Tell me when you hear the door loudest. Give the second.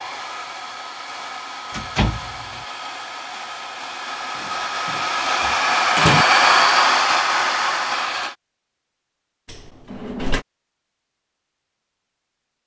6 s.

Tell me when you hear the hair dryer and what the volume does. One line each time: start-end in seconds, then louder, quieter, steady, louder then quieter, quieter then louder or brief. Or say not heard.
0.0-8.3 louder.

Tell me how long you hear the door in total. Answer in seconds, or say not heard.
4 s.